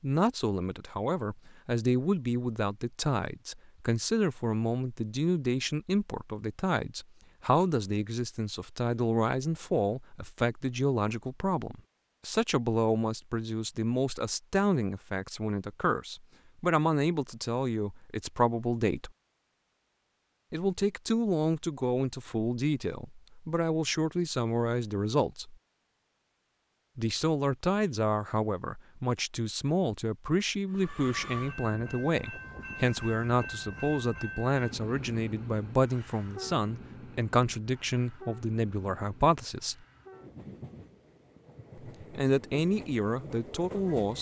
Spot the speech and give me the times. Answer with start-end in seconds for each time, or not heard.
0.0-19.1, 20.5-25.6, 26.9-39.8, 42.0-44.1.